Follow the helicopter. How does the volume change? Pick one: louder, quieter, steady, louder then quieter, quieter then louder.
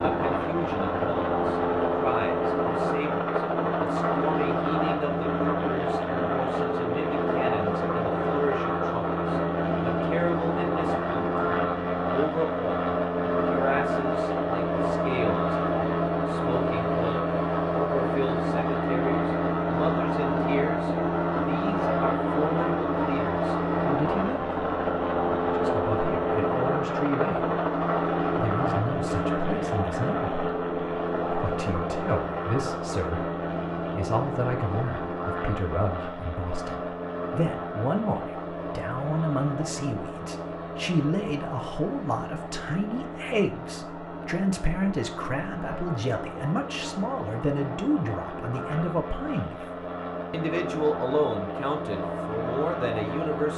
quieter.